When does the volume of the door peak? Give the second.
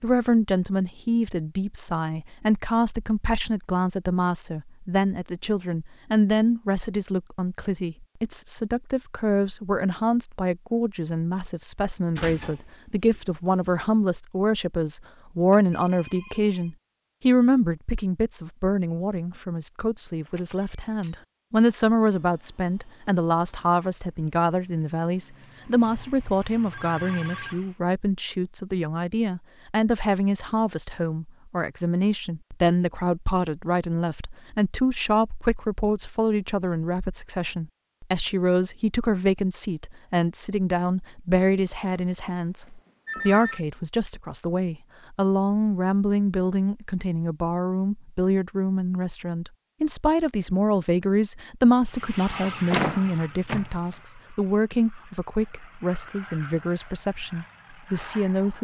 53 s.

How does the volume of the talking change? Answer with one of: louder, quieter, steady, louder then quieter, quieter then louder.
steady.